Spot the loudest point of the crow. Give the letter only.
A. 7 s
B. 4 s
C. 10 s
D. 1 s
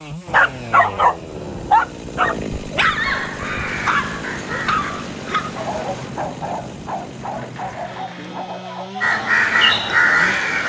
C.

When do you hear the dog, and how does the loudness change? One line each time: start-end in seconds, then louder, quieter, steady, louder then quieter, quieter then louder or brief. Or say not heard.
0.2-10.1 quieter.